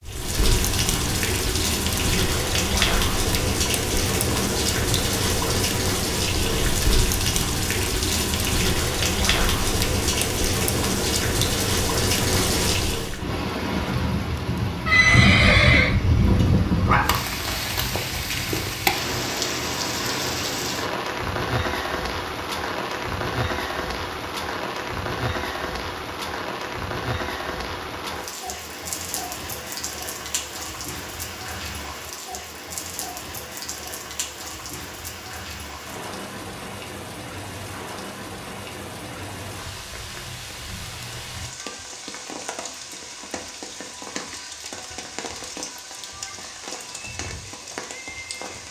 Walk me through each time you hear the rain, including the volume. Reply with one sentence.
The rain can be heard from 0.0 to 48.6 s, getting quieter.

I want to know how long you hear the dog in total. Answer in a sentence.
You can hear the dog for 2 seconds altogether.